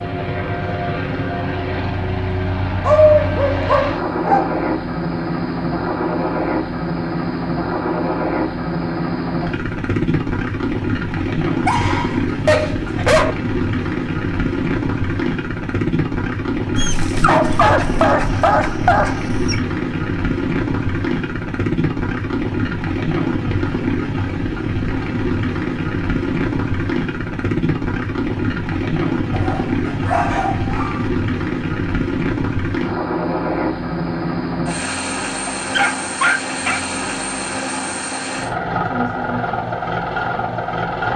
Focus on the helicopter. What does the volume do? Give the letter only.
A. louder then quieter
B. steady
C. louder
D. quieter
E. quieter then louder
B.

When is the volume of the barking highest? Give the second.
3 s.